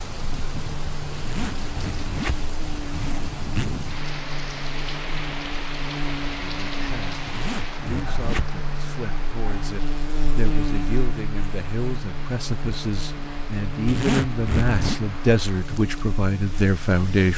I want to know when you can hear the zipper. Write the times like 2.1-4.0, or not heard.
1.1-3.6, 7.2-8.6, 13.8-15.0.